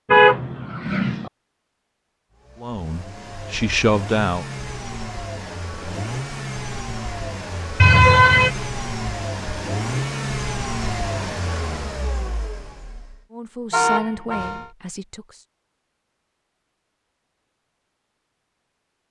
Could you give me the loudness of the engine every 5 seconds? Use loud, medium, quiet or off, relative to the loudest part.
medium, loud, loud, off.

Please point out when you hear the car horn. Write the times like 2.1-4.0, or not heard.
0.1-1.3, 7.8-8.5, 13.7-14.7.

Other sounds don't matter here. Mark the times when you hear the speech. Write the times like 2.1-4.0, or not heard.
2.6-4.5, 13.3-15.4.